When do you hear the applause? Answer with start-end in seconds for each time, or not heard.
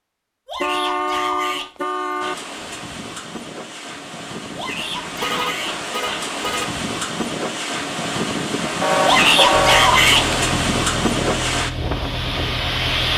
not heard.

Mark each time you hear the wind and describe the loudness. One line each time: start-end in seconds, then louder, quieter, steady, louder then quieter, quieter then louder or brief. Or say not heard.
2.2-13.1 louder.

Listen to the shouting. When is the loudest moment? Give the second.
9 s.